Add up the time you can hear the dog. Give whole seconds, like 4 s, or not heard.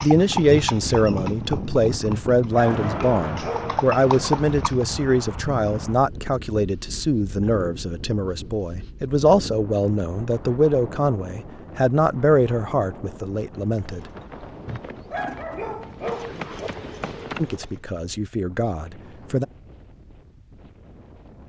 4 s.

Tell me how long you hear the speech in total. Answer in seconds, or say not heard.
16 s.